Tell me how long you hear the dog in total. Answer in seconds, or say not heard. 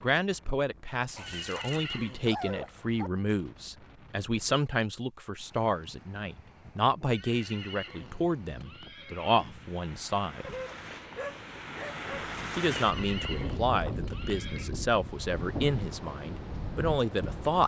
4 s.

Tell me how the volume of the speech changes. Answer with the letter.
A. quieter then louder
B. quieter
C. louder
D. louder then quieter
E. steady
E.